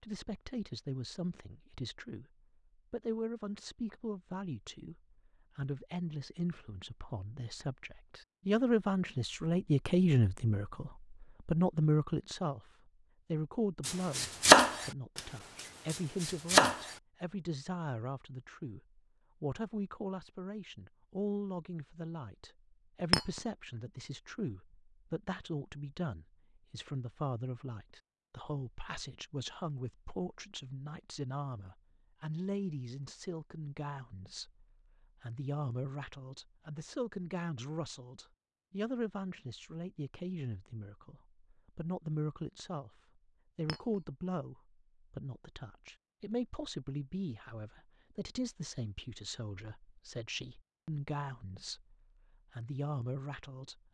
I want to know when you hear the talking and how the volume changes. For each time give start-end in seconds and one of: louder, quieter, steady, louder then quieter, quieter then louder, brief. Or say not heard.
0.0-12.6 louder
13.3-53.8 steady.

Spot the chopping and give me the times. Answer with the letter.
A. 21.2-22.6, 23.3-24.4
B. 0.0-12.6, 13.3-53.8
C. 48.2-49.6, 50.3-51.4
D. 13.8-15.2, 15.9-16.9
D.